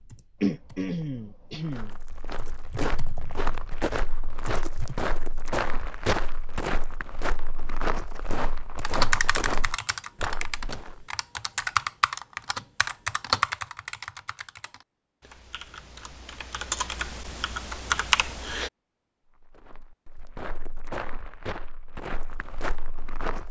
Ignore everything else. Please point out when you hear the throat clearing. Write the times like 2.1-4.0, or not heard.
0.4-1.9.